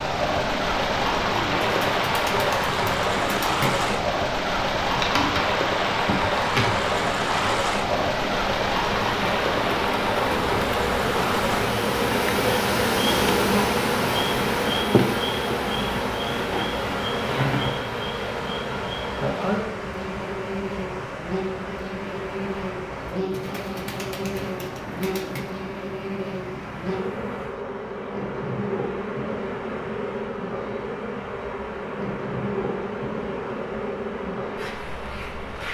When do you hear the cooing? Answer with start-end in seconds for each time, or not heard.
1.2-4.0, 23.1-25.6.